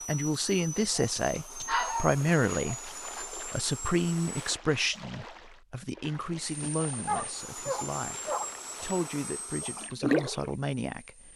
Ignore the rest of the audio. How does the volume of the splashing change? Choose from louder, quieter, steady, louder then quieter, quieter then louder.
louder.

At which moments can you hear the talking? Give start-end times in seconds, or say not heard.
0.1-8.2, 8.8-11.3.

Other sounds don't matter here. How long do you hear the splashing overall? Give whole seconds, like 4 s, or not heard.
9 s.